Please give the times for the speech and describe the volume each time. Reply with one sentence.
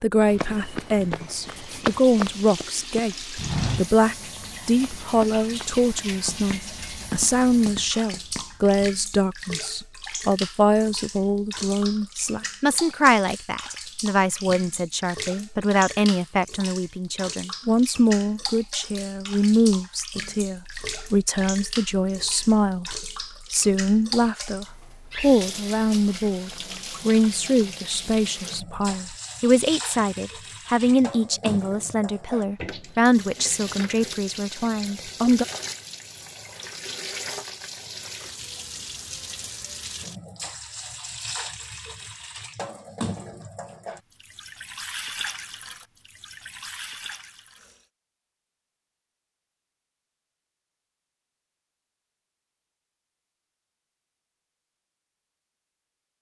The speech can be heard from 0.0 to 35.5 s, at a steady volume.